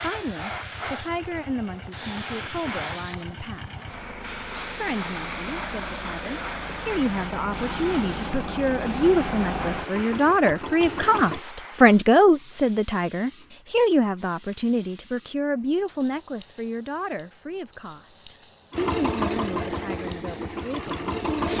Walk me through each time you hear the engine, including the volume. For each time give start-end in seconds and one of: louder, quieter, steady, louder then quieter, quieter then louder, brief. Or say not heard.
0.0-11.4 louder
18.7-21.5 brief.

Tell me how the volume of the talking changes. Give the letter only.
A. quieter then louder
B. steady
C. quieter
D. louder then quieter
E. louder
D.